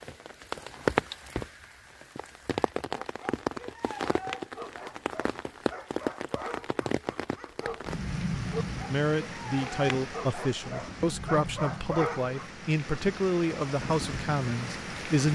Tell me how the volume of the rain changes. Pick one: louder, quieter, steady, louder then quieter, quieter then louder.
quieter.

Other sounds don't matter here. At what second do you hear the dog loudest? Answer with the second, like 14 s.
12 s.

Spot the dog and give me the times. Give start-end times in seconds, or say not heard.
3.0-12.5.